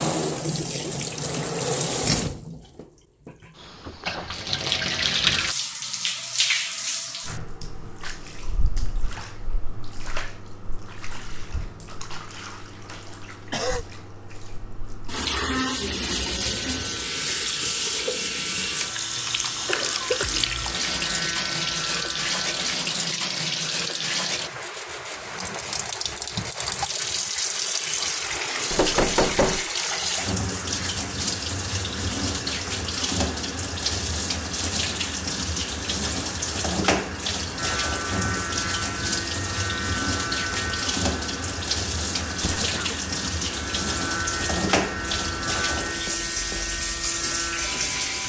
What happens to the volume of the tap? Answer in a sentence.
The volume of the tap stays about the same.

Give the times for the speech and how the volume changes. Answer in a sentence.
The speech can't be heard in this clip.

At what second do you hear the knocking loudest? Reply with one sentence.
The loudest moment of the knocking is at 29 seconds.